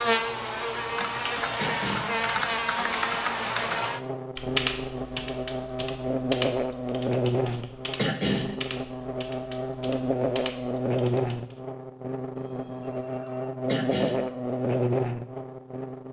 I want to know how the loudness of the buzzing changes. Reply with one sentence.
The volume of the buzzing stays about the same.